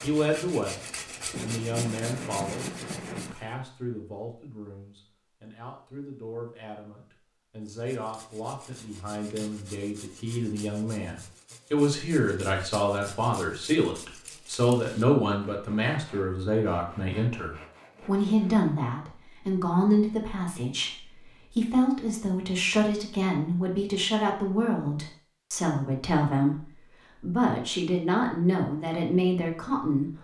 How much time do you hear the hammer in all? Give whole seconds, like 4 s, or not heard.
not heard.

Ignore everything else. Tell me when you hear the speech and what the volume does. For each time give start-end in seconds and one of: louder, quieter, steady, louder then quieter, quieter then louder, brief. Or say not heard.
0.0-30.1 louder.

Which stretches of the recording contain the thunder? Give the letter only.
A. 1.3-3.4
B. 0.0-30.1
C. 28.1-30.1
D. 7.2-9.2
A.